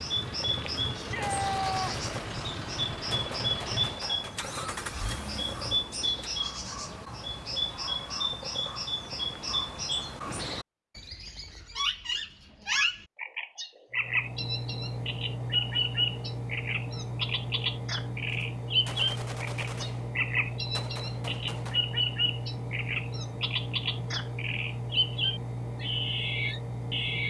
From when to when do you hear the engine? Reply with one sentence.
You can hear the engine from 0.0 to 6.4 s and from 13.9 to 27.2 s.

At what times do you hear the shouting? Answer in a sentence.
The shouting can be heard from 0.9 to 2.0 s.